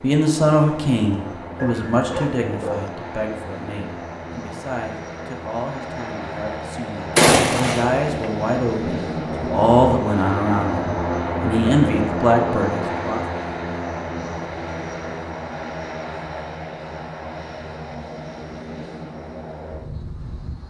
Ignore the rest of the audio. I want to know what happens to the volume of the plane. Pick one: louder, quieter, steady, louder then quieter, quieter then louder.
louder then quieter.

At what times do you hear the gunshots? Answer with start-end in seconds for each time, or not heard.
7.2-8.3.